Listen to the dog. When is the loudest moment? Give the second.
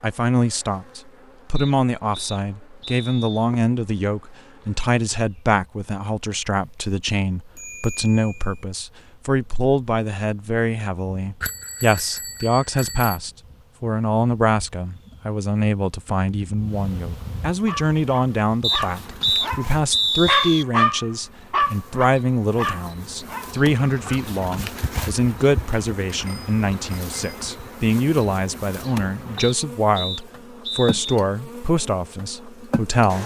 21 s.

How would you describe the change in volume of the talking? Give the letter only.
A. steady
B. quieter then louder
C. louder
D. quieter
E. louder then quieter
A.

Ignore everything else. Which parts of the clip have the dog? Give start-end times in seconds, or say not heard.
17.6-24.2.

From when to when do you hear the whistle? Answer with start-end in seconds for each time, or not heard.
1.6-3.5, 18.6-20.6, 29.4-31.0.